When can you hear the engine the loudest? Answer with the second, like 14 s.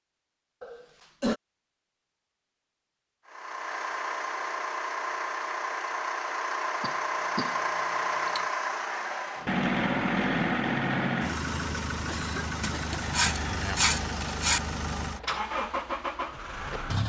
10 s.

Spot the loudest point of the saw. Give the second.
14 s.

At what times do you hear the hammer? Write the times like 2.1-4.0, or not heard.
not heard.